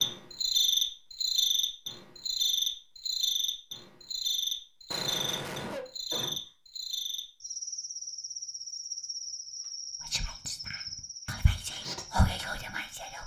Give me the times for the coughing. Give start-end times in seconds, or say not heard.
4.9-6.4.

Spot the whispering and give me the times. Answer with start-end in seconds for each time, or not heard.
10.1-13.2.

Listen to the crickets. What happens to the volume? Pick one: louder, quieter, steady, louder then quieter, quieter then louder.
quieter.